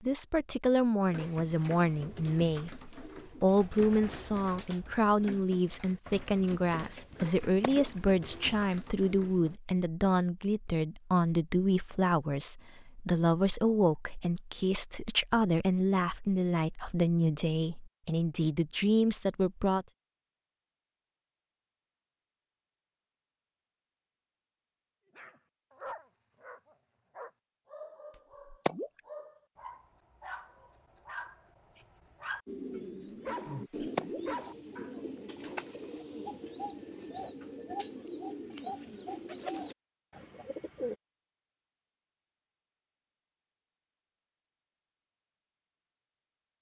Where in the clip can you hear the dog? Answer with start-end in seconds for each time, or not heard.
25.1-35.6.